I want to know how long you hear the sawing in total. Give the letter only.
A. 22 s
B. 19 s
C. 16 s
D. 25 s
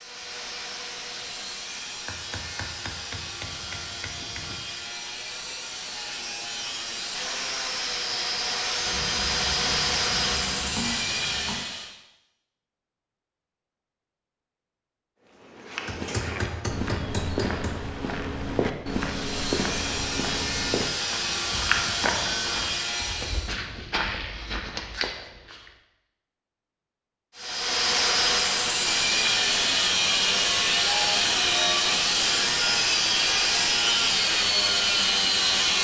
D.